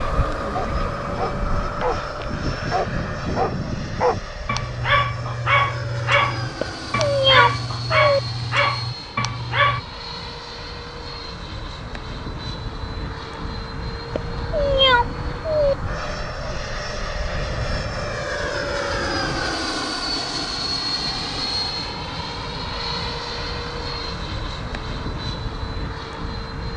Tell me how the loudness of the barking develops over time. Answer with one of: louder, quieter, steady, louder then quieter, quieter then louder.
louder.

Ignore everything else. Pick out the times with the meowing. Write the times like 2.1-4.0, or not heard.
6.5-8.2, 14.1-15.8.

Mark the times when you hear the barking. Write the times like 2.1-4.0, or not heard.
0.5-9.8.